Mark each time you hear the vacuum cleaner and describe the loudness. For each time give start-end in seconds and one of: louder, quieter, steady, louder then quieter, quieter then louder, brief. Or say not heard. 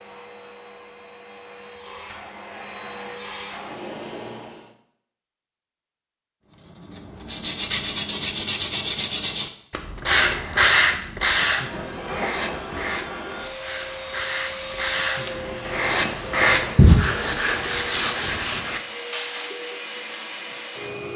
0.0-4.8 louder
11.3-21.1 steady.